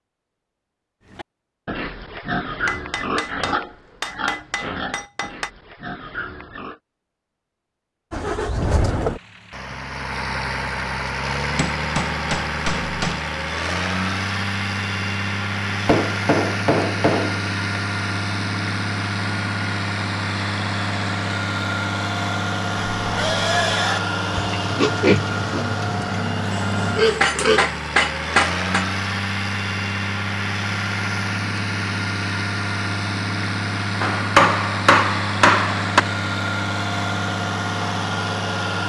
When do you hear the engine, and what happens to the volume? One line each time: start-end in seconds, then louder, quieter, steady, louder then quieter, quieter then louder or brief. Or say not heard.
8.1-38.8 steady.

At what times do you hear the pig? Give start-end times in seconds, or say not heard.
1.1-6.8, 22.9-27.7.